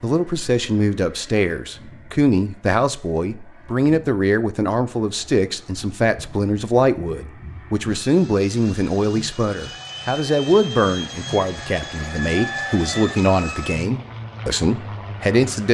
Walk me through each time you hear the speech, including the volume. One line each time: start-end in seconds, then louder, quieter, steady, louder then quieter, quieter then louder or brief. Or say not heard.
0.0-15.6 steady.